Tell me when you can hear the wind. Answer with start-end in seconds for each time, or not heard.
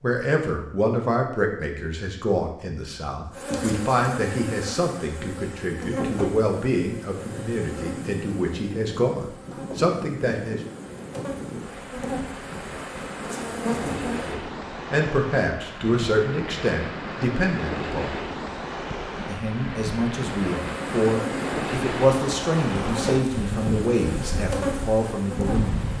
7.1-25.9.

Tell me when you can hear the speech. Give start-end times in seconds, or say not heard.
0.0-10.6, 14.2-18.1, 19.2-25.9.